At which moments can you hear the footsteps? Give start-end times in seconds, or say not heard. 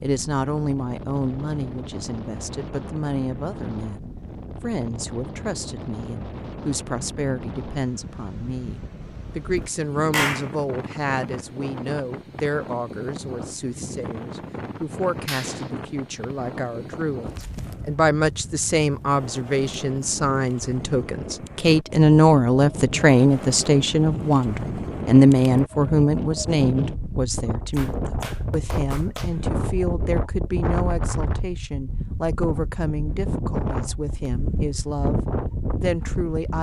not heard.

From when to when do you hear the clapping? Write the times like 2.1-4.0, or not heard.
10.1-10.5, 15.2-15.7, 27.8-29.3.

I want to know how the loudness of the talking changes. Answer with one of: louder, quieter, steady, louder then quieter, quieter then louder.
louder then quieter.